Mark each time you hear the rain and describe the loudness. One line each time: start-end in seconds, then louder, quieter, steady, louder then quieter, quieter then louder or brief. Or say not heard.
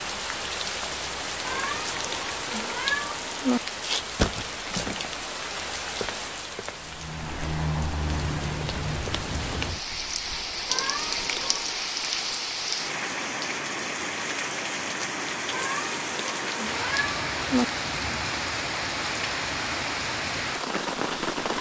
0.0-21.5 steady.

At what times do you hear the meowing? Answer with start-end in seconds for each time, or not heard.
1.4-3.6, 10.7-11.8, 15.5-17.6.